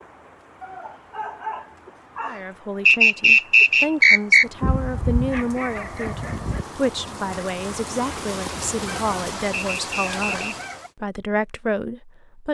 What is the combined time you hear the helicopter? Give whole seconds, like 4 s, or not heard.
not heard.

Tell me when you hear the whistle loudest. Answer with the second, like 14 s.
3 s.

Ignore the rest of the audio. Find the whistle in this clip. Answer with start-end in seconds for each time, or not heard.
2.9-4.5, 9.6-10.8.